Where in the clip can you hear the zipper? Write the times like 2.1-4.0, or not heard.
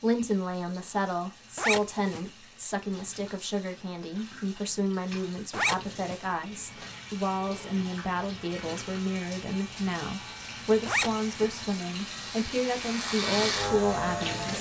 1.6-2.2, 5.5-6.2, 10.8-11.5.